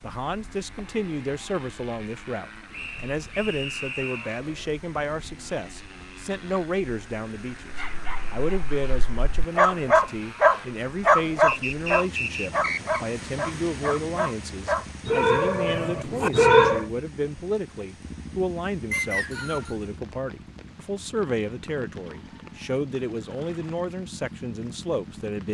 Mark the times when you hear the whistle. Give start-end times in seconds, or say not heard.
2.7-4.3, 11.4-13.0, 18.9-19.8.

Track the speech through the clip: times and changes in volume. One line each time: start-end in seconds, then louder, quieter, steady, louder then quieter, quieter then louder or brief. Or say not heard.
0.0-25.4 steady.